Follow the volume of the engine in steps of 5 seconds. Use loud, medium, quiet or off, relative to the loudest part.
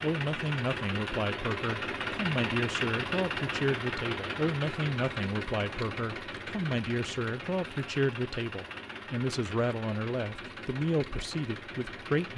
loud, medium, medium.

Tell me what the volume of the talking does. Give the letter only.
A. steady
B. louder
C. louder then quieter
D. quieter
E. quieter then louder
A.